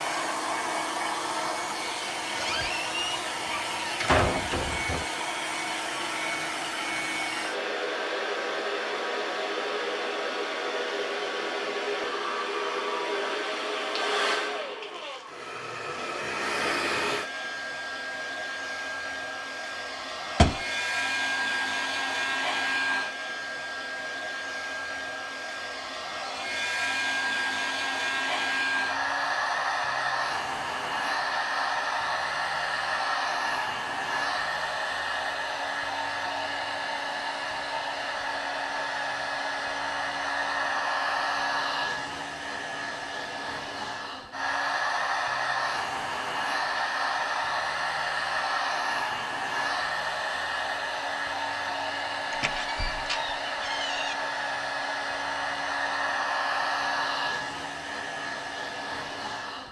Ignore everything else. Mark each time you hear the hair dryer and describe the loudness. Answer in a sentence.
The hair dryer can be heard from 0.0 to 59.6 s, at a steady volume.